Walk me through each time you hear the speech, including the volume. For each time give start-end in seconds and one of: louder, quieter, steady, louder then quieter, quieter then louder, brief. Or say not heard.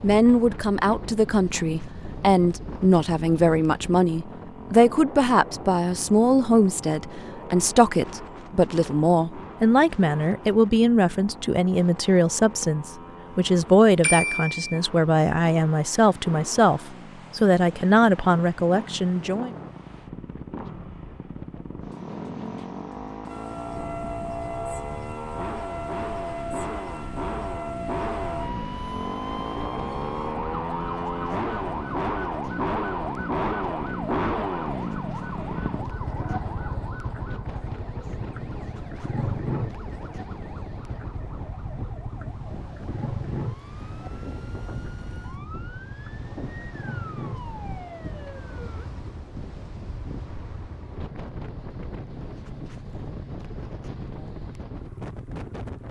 0.0-19.6 steady.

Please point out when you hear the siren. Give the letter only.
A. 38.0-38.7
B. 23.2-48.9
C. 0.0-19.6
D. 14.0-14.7
B.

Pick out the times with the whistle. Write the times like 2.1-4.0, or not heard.
not heard.